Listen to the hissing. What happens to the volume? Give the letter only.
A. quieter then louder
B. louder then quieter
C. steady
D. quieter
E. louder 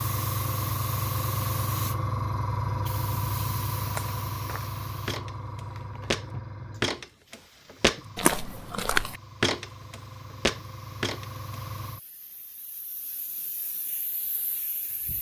D.